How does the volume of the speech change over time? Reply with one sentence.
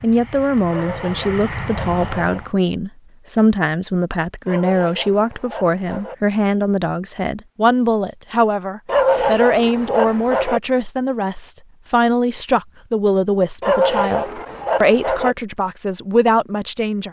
The volume of the speech stays about the same.